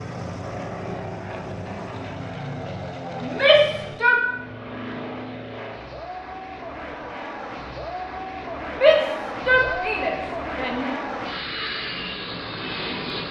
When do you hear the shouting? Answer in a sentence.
You can hear the shouting from 3.2 to 4.2 s and from 8.7 to 10.9 s.